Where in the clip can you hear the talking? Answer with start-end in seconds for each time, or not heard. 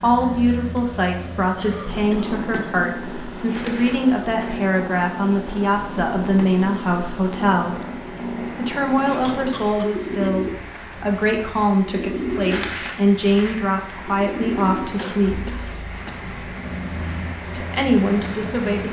0.0-7.8, 8.6-15.5, 17.5-18.8.